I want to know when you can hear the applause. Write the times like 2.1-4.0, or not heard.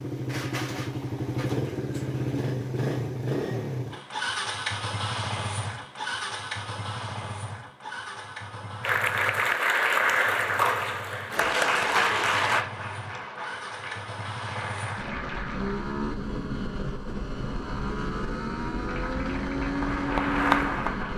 8.8-15.9, 18.9-21.1.